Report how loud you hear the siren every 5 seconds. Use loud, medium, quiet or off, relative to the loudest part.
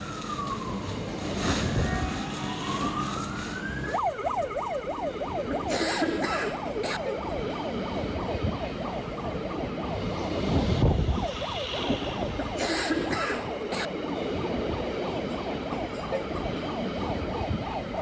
loud, loud, medium, medium.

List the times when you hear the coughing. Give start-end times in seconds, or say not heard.
5.5-7.0, 12.3-13.9.